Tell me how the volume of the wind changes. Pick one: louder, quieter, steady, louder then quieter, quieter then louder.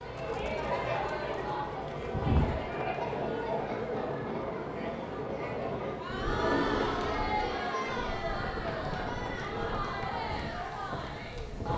steady.